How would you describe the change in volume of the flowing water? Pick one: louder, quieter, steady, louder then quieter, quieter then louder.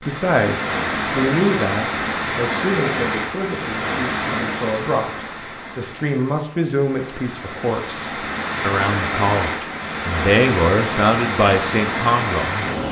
quieter then louder.